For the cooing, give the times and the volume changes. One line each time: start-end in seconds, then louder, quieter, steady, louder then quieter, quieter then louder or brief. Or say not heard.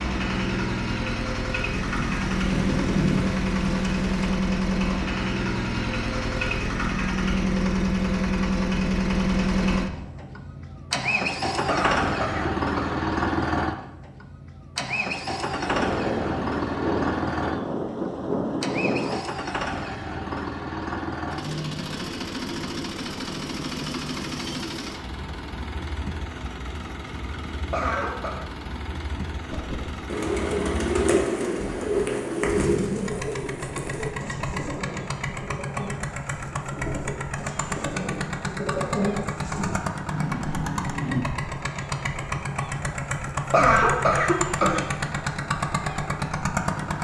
29.5-39.8 quieter then louder.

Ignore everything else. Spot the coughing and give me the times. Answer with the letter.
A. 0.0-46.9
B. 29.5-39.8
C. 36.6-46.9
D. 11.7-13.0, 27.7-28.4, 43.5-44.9
D.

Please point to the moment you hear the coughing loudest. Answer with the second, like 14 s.
44 s.